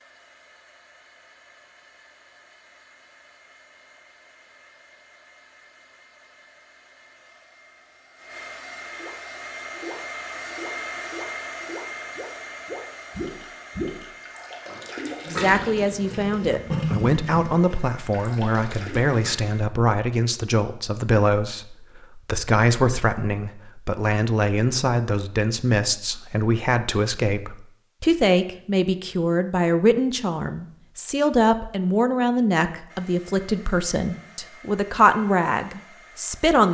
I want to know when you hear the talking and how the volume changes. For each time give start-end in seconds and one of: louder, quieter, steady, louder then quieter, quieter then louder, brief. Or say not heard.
15.2-36.6 steady.